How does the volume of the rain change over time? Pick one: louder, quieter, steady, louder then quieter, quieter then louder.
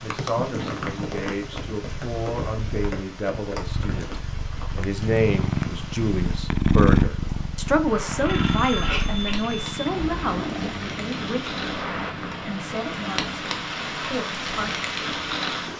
quieter then louder.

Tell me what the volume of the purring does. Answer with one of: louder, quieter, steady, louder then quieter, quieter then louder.
louder then quieter.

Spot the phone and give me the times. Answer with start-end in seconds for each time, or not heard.
8.2-9.7.